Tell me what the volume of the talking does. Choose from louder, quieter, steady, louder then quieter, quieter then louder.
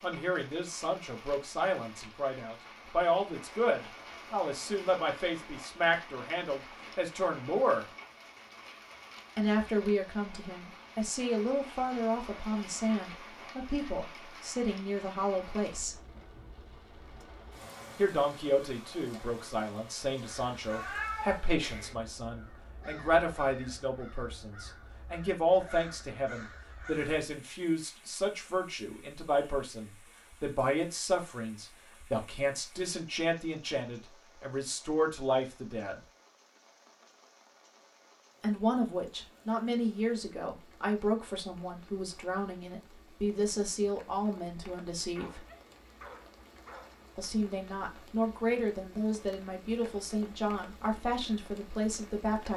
steady.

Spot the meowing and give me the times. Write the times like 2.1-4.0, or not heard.
20.7-21.9.